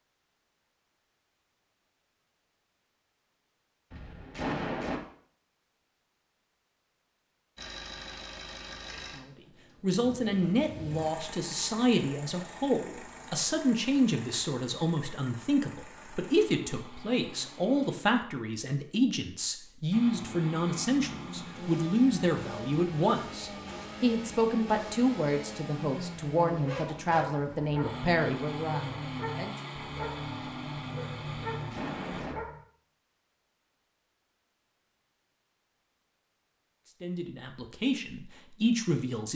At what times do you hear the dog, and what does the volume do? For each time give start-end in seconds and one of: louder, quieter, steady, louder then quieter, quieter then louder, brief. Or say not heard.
26.4-32.6 steady.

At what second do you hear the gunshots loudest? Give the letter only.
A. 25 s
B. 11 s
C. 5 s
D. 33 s
C.